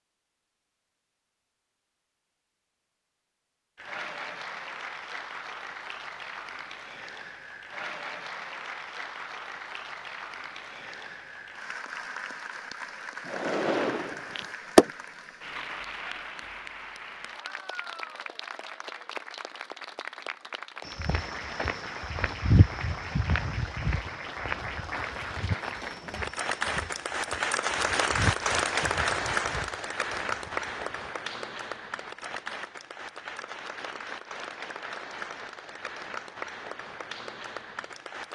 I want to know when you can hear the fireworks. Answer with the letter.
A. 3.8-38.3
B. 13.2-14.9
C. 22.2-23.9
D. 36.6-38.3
B.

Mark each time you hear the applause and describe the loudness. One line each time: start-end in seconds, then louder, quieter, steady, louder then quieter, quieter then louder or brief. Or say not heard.
3.8-38.3 louder then quieter.